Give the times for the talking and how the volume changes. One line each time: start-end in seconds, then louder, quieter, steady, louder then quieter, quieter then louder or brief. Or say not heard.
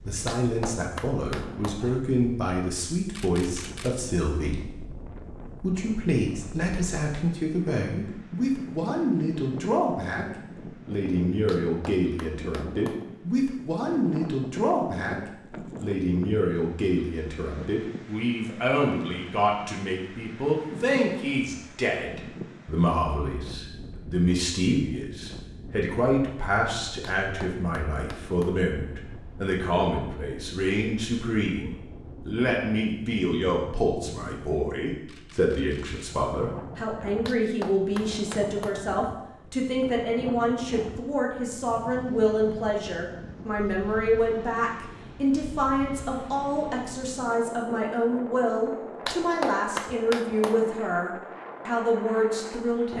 0.1-52.9 steady.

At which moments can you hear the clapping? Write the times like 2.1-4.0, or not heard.
0.2-1.8, 11.4-13.1, 27.0-28.6, 37.2-38.8, 49.0-50.6.